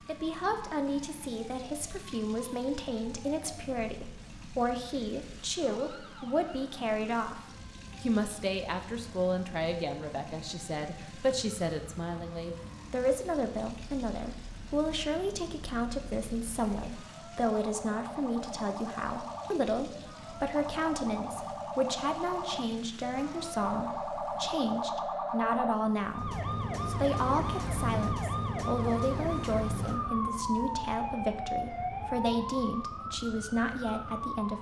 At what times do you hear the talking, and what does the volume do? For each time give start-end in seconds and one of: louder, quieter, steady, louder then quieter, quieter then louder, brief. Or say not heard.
0.1-34.5 steady.